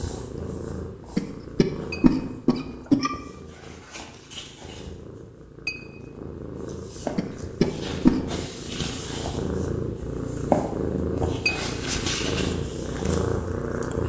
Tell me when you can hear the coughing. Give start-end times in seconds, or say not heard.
1.1-3.1, 7.2-8.2.